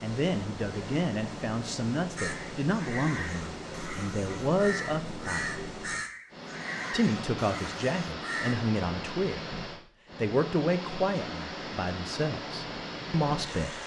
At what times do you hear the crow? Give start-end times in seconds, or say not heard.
2.1-8.6.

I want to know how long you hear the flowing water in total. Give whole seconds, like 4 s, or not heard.
14 s.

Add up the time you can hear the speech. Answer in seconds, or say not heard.
12 s.